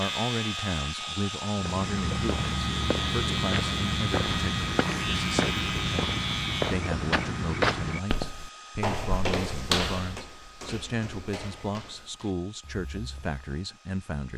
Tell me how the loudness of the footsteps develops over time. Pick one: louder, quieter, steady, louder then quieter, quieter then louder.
quieter.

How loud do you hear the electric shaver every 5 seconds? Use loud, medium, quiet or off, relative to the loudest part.
loud, loud, off.